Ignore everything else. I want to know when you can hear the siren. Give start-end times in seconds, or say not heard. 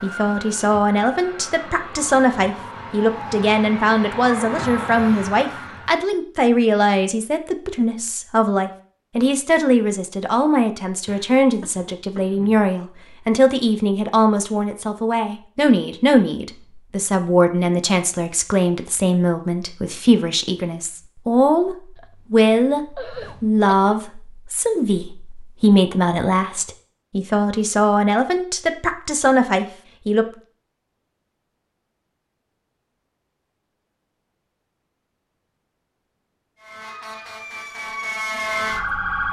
0.0-6.0, 36.6-39.2.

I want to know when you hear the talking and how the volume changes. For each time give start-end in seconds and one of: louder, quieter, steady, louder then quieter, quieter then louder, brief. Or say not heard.
0.0-30.2 steady.